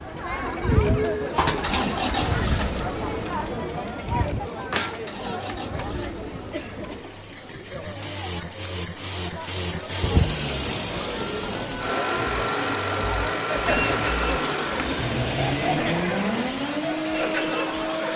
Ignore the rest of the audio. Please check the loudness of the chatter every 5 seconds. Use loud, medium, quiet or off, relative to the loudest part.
loud, medium, loud, loud.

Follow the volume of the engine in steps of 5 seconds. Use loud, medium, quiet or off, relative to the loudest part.
loud, medium, loud, loud.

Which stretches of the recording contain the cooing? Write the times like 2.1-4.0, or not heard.
0.4-2.4, 4.7-7.2, 10.0-11.8, 13.7-16.1.